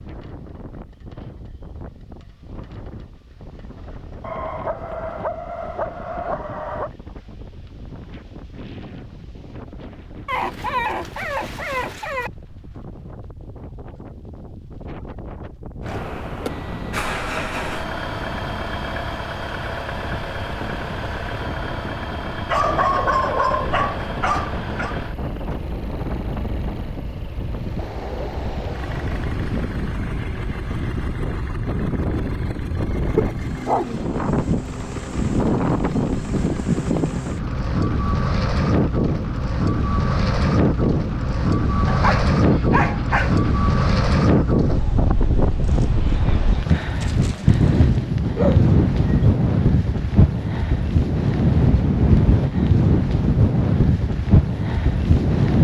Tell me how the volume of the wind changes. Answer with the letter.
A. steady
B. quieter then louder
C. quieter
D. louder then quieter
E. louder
E.